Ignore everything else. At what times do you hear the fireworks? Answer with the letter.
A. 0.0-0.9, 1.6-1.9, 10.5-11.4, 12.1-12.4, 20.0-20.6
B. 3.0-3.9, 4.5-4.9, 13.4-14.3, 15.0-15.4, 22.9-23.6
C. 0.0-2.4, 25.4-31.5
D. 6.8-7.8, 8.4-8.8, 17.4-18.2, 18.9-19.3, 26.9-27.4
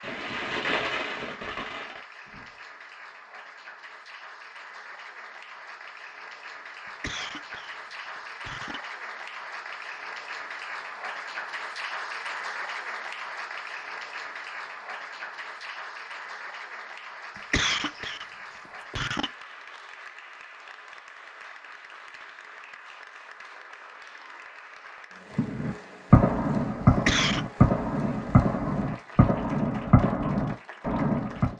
C.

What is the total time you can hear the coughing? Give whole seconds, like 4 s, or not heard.
3 s.